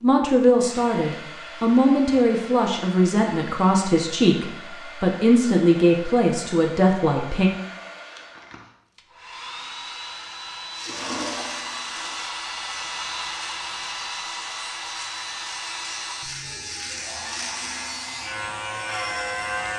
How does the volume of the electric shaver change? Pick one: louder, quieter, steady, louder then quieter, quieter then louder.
louder.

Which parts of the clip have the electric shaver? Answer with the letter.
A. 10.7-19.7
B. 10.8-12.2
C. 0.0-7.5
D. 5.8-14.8
A.